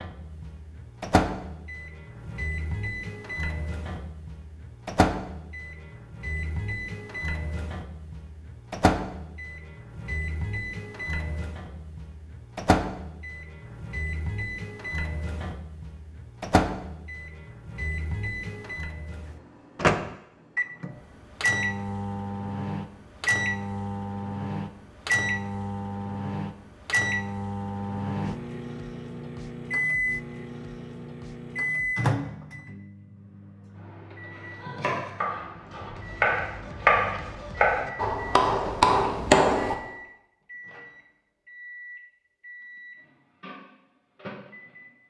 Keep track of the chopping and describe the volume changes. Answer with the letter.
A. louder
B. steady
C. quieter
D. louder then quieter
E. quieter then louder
A.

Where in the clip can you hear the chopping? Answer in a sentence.
The chopping can be heard from 34.6 to 39.8 s.